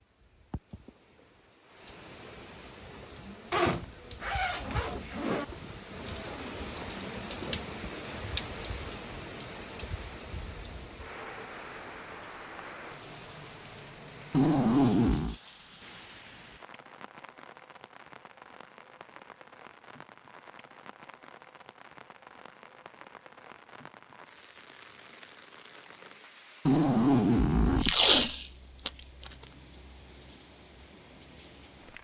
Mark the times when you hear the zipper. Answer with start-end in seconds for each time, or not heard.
3.5-5.5, 14.3-15.3, 26.6-28.1.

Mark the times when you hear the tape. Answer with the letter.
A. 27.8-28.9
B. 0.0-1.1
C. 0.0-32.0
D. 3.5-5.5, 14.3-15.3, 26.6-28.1
A.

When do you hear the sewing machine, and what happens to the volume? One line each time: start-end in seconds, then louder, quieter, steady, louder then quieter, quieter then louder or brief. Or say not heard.
not heard.